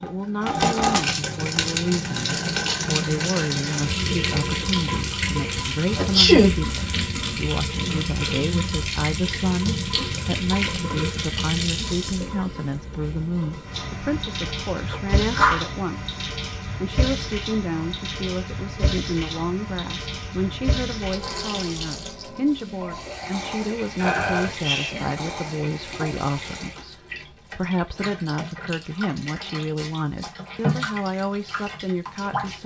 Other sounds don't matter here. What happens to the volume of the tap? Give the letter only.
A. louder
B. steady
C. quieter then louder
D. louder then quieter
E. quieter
E.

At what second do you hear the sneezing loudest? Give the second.
6 s.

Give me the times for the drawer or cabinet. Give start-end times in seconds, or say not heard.
not heard.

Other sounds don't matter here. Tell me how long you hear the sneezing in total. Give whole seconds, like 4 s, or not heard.
3 s.